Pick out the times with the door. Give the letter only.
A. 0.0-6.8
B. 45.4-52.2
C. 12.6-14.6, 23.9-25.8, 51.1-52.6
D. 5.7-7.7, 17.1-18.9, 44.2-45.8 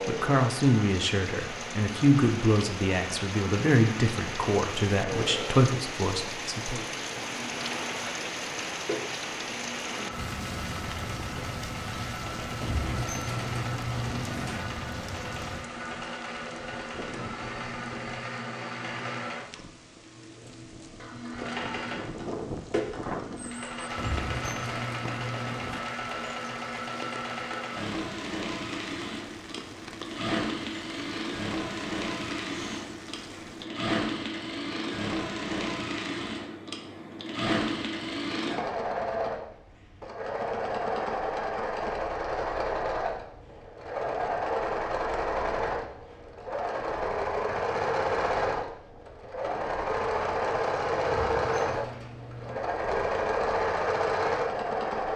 C.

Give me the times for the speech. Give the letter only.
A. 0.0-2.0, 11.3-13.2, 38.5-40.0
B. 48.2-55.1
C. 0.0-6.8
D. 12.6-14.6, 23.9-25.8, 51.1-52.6
C.